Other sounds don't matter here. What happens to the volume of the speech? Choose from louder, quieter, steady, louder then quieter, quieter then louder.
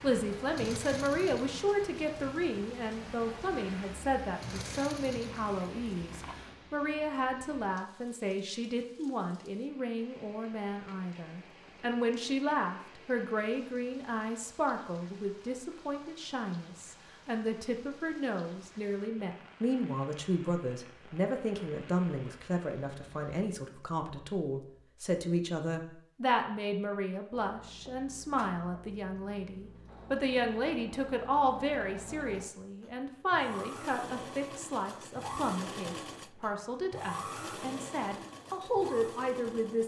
steady.